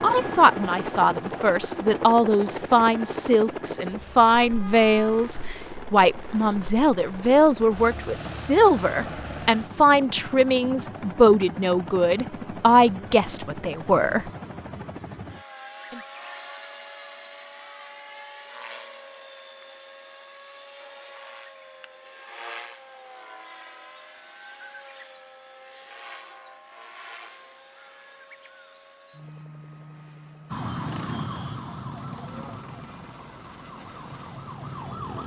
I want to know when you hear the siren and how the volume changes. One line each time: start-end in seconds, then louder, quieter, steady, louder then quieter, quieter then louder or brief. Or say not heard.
30.5-35.2 quieter then louder.